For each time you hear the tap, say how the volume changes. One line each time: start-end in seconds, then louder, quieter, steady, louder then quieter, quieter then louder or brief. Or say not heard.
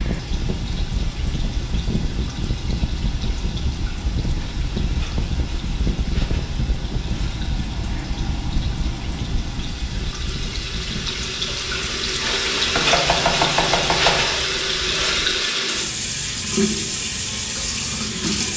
0.0-18.5 louder.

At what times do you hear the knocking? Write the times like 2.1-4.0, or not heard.
12.8-14.2.